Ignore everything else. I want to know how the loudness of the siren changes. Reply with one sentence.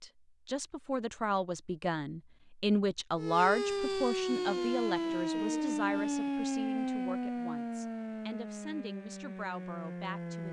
The loudness of the siren goes down.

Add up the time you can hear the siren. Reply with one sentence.
You can hear the siren for 7 seconds altogether.